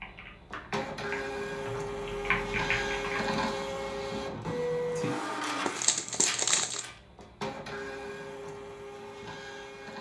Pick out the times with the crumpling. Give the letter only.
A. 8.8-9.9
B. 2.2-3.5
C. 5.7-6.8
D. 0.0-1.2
C.